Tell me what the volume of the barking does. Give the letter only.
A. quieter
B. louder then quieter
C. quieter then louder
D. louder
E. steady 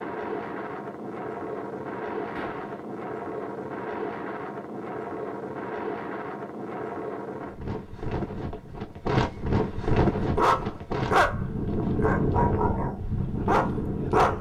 C.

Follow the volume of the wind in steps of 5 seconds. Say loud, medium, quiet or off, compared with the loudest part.
medium, loud, loud.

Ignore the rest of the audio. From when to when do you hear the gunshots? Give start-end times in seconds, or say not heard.
2.4-2.9.